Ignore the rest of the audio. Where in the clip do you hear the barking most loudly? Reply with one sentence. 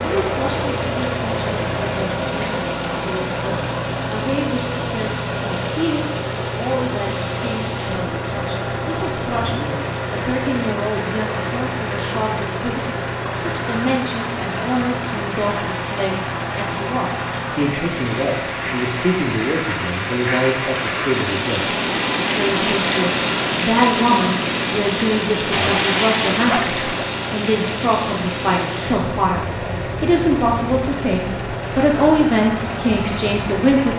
The volume of the barking peaks at 26 seconds.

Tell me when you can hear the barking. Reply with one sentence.
The barking can be heard from 25.5 to 27.1 s.